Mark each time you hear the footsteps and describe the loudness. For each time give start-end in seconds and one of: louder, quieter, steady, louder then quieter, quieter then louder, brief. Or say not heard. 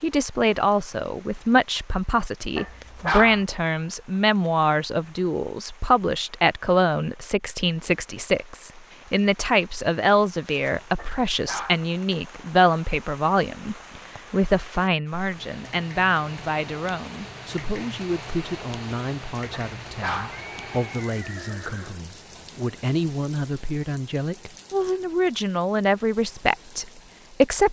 not heard.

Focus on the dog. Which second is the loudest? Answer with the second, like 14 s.
3 s.